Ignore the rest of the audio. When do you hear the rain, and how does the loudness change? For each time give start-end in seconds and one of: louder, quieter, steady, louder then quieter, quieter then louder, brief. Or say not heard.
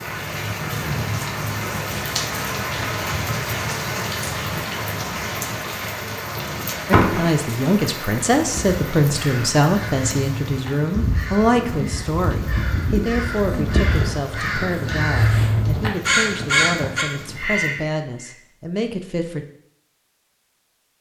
0.0-17.7 quieter.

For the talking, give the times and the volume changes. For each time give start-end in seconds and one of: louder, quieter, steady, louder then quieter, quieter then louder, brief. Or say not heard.
6.8-19.4 quieter.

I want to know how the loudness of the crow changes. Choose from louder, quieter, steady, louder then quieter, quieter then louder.
louder.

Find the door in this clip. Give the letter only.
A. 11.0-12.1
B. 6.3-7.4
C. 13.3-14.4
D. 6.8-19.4
B.